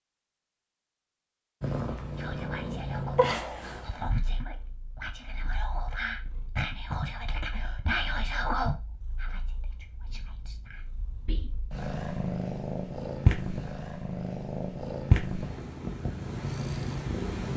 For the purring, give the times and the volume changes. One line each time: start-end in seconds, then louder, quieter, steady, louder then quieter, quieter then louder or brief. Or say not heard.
1.6-17.5 quieter then louder.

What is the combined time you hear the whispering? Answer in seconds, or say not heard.
9 s.